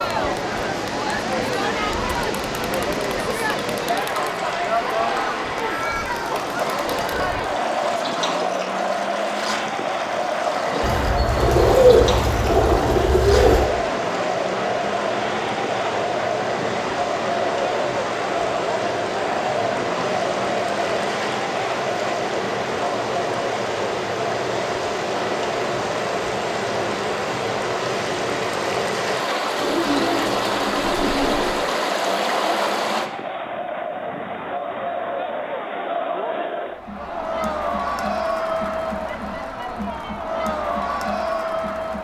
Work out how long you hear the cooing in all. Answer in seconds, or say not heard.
5 s.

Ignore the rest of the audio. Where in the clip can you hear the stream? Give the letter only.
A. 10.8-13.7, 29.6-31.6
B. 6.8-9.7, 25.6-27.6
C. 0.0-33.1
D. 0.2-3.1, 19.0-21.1
C.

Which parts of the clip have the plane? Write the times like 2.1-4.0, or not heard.
not heard.